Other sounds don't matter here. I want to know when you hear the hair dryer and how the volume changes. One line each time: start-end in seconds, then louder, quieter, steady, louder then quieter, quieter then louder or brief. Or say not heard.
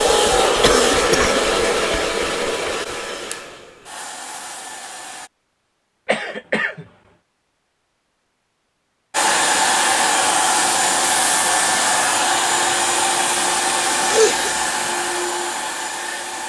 0.0-5.3 quieter
9.1-16.4 quieter.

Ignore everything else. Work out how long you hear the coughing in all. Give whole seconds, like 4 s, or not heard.
2 s.